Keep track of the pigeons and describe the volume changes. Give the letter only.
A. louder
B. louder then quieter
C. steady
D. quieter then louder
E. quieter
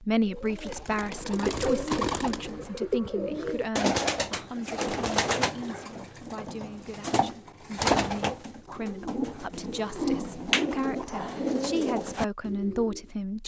D.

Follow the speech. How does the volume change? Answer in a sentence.
The loudness of the speech goes down, then up.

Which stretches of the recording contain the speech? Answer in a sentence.
The speech can be heard from 0.0 to 13.4 s.